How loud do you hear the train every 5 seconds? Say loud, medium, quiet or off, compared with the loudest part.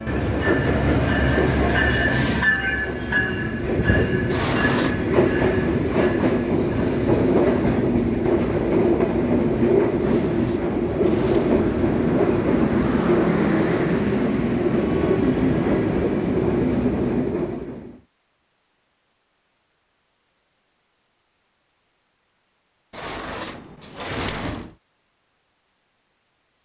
loud, loud, loud, loud, off, off.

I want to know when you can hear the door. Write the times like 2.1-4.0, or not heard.
4.3-5.0, 10.0-11.7, 22.9-24.7.